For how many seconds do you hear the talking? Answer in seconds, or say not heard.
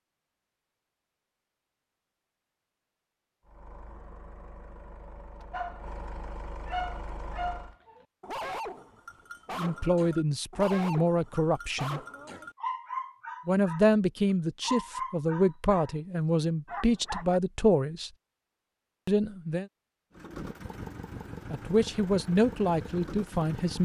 10 s.